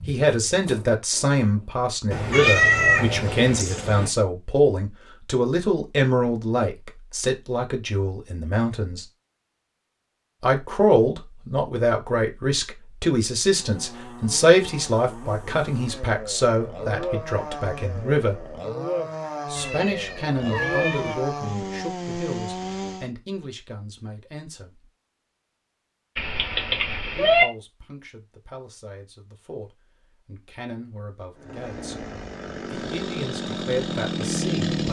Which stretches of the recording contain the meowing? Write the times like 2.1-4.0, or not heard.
2.1-4.1, 19.6-21.1, 26.1-27.4.